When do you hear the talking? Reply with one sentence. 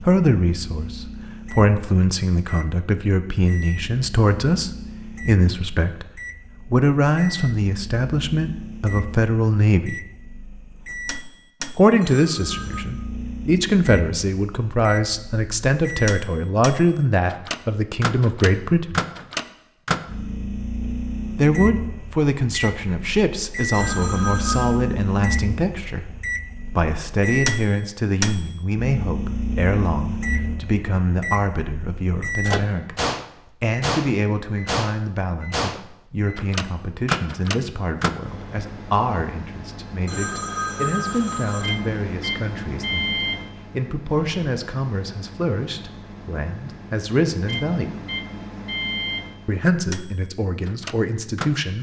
You can hear the talking from 0.0 to 10.0 s, from 11.8 to 19.0 s, from 21.4 to 26.1 s, from 26.7 to 43.1 s, from 43.7 to 48.0 s and from 49.5 to 51.7 s.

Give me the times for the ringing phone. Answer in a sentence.
You can hear the ringing phone from 12.0 to 12.8 s, from 23.7 to 24.8 s and from 40.0 to 41.8 s.